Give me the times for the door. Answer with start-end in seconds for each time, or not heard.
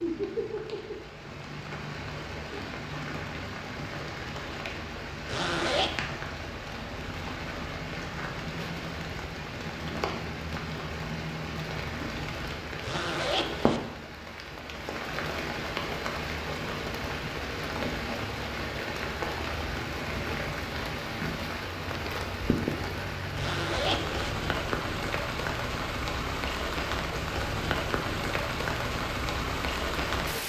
not heard.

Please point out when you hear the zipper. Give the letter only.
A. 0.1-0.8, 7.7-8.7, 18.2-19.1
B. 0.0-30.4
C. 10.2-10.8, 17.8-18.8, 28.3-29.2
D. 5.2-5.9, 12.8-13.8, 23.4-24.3
D.